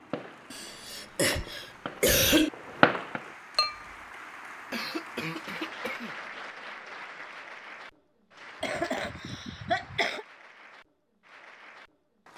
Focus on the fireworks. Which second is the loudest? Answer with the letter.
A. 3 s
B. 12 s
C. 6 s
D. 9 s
A.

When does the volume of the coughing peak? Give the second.
2 s.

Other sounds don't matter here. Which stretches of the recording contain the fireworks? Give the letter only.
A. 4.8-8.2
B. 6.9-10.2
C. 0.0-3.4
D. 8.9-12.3
C.